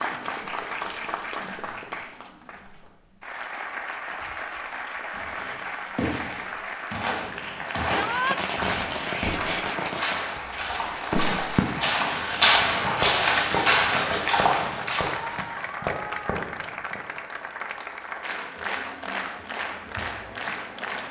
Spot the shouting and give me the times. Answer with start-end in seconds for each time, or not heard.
7.9-8.4.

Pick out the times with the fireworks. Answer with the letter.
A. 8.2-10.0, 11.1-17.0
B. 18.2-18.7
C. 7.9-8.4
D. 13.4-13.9
A.